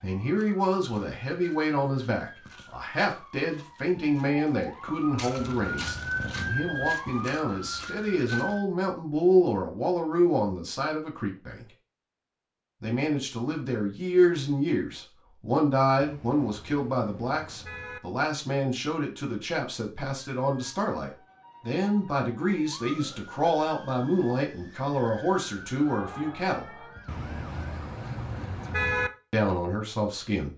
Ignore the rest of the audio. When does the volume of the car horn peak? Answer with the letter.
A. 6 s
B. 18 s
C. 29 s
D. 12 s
C.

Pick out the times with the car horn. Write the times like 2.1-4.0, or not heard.
5.3-6.8, 15.9-18.0, 27.1-29.1.